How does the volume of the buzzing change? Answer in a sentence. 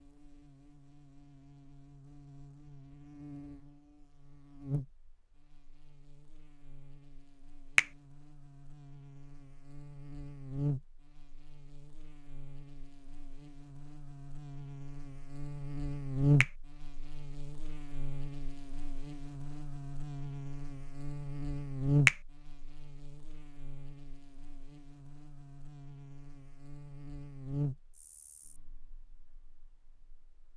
The loudness of the buzzing goes up, then down.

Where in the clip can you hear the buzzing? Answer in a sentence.
The buzzing can be heard from 0.0 to 30.2 s.